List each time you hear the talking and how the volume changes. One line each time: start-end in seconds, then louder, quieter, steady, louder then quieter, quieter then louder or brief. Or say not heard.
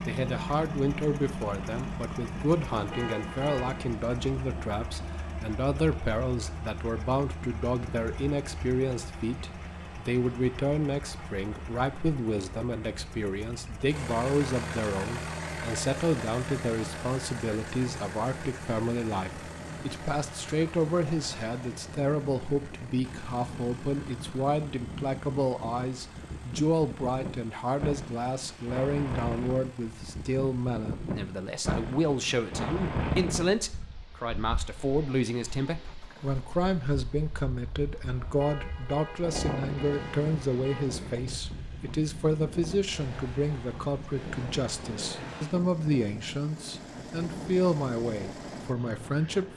0.0-49.5 steady.